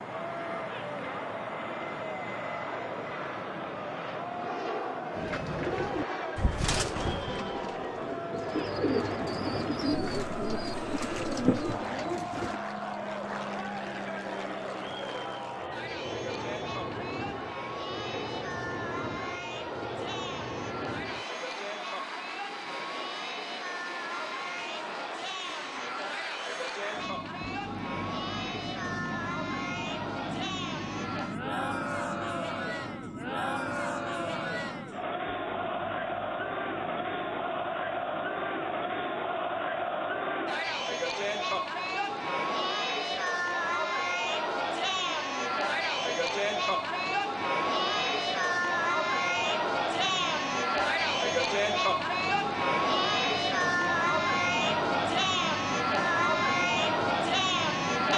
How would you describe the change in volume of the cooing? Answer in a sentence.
The loudness of the cooing goes down, then up.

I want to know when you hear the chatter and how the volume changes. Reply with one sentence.
The chatter can be heard from 0.0 to 58.1 s, getting louder.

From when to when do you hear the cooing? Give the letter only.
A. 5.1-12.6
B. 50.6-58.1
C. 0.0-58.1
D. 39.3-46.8
A.